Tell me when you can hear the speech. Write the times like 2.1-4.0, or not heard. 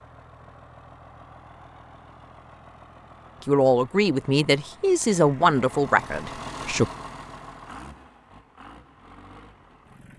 3.5-6.9.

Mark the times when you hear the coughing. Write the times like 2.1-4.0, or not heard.
not heard.